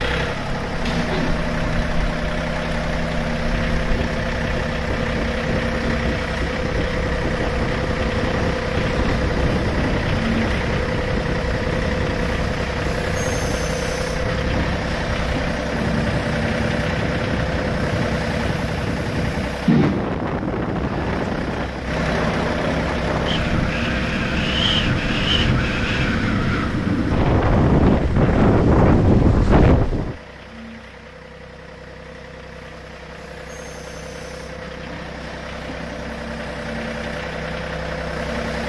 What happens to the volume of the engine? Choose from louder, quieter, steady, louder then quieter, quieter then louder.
quieter.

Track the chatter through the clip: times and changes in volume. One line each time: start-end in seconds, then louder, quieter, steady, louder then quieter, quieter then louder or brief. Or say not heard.
not heard.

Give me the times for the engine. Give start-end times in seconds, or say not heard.
0.0-38.6.